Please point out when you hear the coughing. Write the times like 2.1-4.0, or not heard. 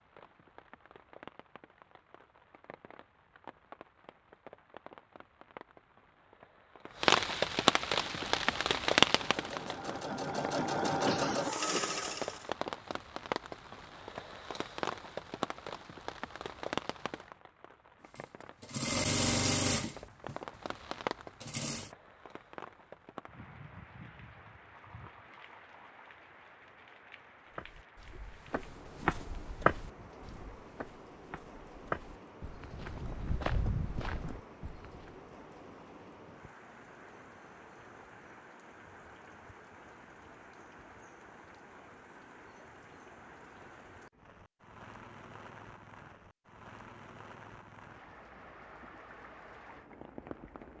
11.1-12.1.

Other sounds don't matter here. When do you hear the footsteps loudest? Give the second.
30 s.